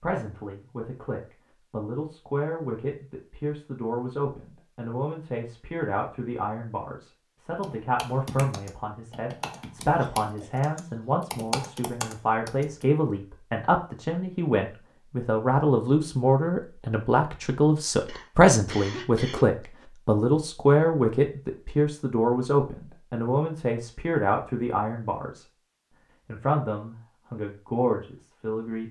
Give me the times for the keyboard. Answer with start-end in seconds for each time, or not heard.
7.6-12.8.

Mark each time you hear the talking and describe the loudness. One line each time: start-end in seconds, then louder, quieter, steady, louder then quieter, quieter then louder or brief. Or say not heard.
0.0-25.4 louder
26.2-28.8 brief.